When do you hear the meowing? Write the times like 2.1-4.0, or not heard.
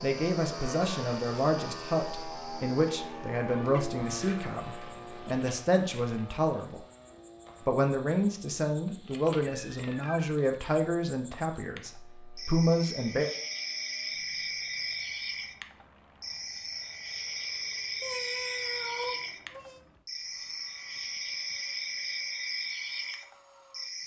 3.4-5.4, 9.4-10.3, 18.0-19.8.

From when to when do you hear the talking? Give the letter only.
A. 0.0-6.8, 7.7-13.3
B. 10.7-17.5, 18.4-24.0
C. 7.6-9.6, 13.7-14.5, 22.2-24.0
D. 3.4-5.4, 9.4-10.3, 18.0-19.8
A.